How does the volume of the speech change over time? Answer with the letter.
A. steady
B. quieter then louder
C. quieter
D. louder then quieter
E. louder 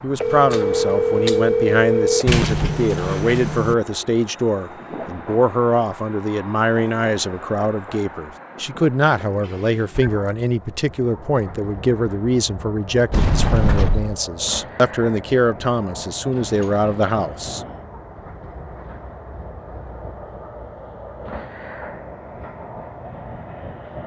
A.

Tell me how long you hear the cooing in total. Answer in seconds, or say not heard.
not heard.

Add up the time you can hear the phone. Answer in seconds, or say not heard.
3 s.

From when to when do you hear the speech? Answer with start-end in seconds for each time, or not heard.
0.0-17.6.